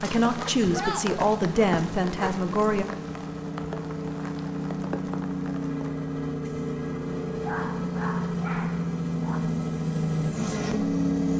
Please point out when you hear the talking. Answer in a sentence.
You can hear the talking from 0.0 to 2.9 s.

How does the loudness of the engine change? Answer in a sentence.
The loudness of the engine goes up.